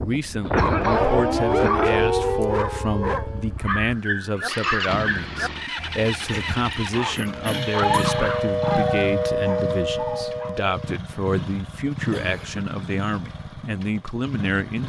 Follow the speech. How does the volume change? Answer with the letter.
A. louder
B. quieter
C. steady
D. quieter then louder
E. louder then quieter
C.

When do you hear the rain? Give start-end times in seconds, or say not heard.
not heard.